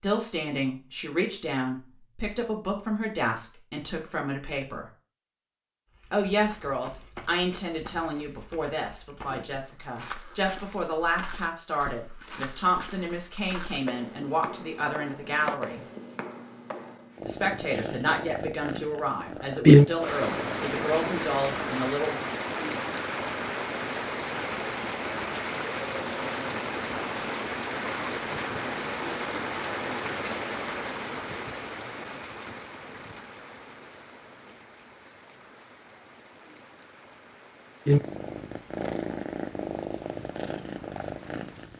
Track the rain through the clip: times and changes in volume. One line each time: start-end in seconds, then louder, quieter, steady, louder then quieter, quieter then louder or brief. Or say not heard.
20.0-41.7 quieter.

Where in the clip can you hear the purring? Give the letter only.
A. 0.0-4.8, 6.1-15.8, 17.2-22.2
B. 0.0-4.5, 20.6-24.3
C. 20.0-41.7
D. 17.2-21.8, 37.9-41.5
D.